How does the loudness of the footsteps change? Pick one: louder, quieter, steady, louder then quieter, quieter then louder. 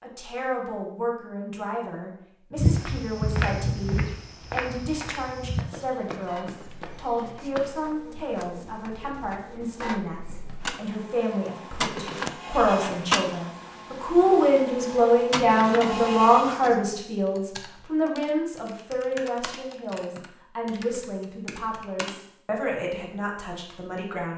quieter.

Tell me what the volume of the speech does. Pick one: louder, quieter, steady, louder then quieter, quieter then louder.
louder then quieter.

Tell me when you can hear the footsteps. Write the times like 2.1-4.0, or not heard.
2.5-8.0.